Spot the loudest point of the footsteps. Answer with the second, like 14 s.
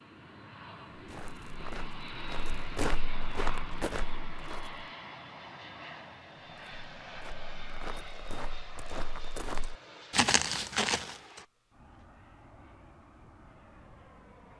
10 s.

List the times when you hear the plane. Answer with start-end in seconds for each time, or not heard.
0.0-14.5.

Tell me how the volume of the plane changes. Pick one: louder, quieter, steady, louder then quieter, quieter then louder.
quieter.